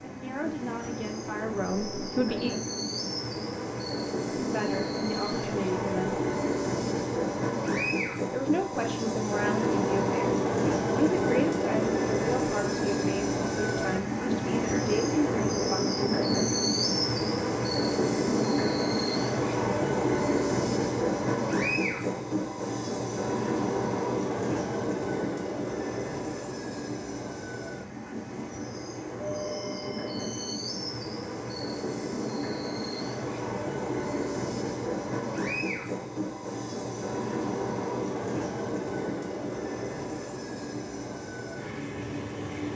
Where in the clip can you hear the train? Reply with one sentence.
You can hear the train from 0.0 to 42.7 s.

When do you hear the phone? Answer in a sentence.
The phone can be heard from 29.1 to 30.5 s.